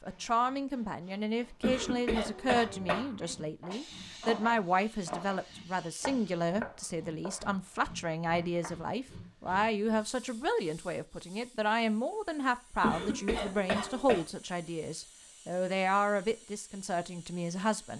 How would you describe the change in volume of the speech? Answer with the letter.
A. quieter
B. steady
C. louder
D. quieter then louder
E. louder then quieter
B.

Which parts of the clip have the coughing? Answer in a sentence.
The coughing can be heard from 1.6 to 3.0 s and from 12.8 to 14.2 s.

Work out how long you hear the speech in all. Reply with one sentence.
The speech can be heard for 18 seconds in total.